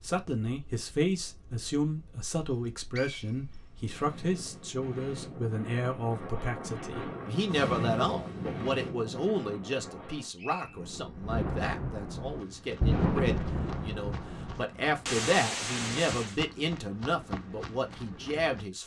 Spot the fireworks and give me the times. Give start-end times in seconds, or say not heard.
10.6-16.4.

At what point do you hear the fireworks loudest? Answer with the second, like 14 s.
13 s.